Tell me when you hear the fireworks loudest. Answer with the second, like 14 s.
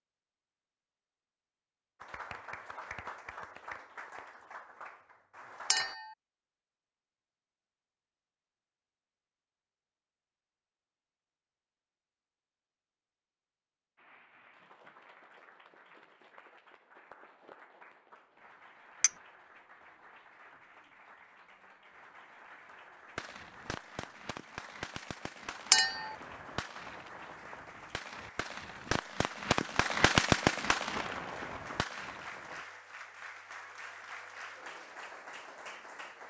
30 s.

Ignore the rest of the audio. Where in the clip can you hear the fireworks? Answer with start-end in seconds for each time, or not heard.
23.1-32.6.